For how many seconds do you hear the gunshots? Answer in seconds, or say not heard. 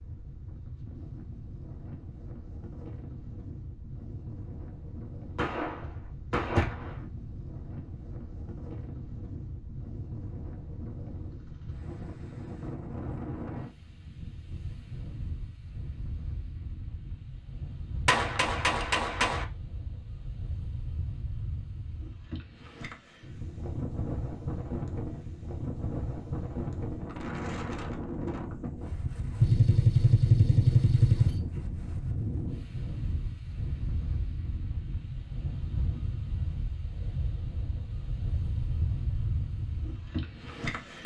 5 s.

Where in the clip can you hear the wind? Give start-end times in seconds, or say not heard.
0.0-41.0.